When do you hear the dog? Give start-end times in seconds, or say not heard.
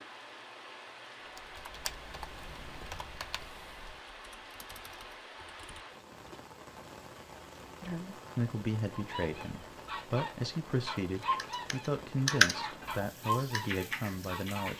8.9-14.7.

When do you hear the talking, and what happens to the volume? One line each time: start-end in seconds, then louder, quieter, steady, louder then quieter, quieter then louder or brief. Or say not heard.
7.8-14.7 steady.